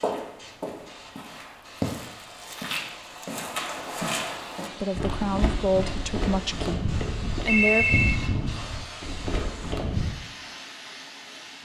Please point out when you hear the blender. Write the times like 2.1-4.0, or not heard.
not heard.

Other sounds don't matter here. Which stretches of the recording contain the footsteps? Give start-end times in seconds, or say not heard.
0.0-10.1.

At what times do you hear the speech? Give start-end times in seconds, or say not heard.
4.8-7.8.